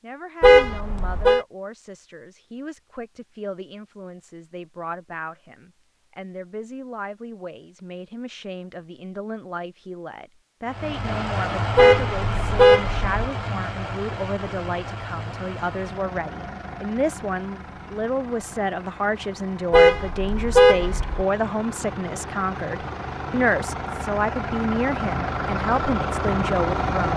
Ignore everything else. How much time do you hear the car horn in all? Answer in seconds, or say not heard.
4 s.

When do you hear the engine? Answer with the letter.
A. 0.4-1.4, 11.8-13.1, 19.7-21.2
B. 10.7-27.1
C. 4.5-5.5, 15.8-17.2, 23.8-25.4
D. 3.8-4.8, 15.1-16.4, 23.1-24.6
B.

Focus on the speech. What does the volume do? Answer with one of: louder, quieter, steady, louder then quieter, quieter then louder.
louder.